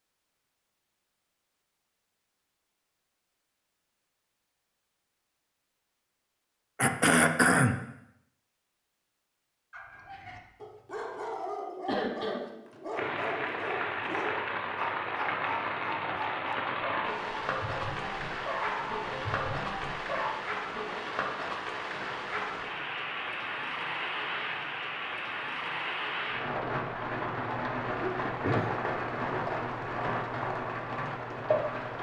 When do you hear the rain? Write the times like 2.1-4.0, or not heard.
12.9-31.9.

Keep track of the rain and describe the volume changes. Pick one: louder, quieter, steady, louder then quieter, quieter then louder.
steady.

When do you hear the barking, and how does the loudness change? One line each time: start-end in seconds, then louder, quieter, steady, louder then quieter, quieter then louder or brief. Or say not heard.
9.7-20.4 steady.